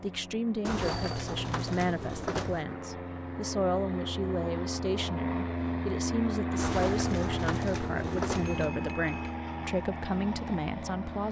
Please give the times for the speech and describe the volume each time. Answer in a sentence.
The speech can be heard from 0.0 to 11.2 s, at a steady volume.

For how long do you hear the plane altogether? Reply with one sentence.
You can hear the plane for 11 seconds altogether.